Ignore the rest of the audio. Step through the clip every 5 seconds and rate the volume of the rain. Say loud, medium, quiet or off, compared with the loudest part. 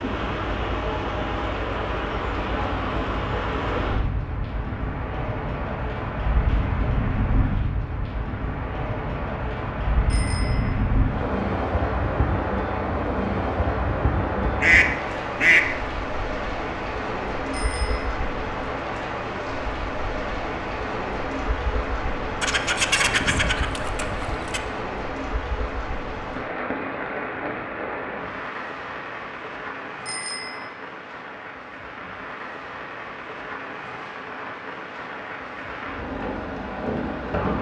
loud, loud, loud, loud, loud, medium, medium, loud.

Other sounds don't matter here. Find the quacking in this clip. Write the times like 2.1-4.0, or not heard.
14.4-15.8, 22.4-24.6.